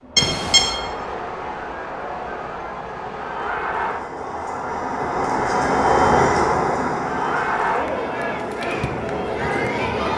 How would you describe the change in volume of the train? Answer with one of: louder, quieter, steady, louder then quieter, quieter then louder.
louder then quieter.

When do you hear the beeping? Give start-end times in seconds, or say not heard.
0.1-0.8.